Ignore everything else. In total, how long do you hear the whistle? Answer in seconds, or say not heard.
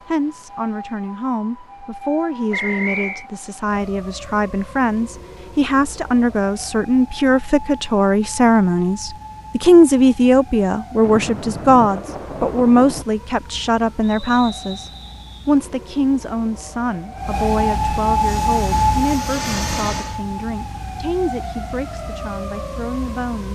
2 s.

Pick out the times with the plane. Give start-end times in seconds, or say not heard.
18.1-20.2.